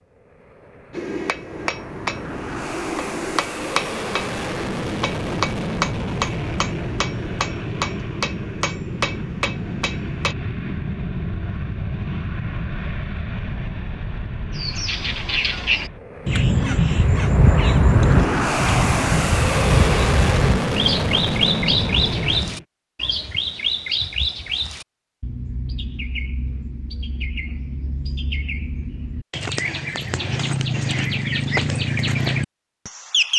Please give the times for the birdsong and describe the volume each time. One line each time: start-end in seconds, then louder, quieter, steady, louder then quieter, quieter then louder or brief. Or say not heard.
14.6-33.3 quieter then louder.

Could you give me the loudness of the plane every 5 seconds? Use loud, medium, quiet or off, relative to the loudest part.
medium, medium, medium, loud, loud, off, off.